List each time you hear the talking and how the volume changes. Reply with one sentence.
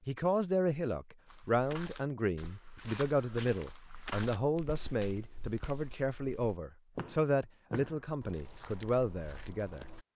You can hear the talking from 0.1 to 9.8 s, at a steady volume.